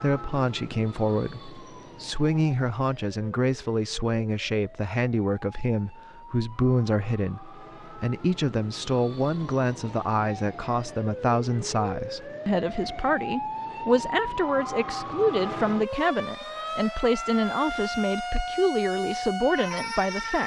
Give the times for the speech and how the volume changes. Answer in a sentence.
The speech can be heard from 0.0 to 20.4 s, at a steady volume.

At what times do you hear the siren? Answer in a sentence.
The siren can be heard from 0.0 to 20.4 s.